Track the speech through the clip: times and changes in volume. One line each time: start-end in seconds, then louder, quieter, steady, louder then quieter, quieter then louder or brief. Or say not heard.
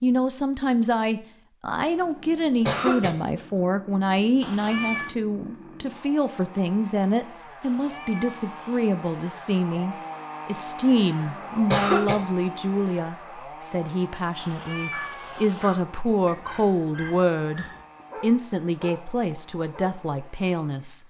0.0-21.0 steady.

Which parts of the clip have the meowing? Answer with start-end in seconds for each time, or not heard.
4.4-5.2, 7.6-8.8, 14.3-15.7.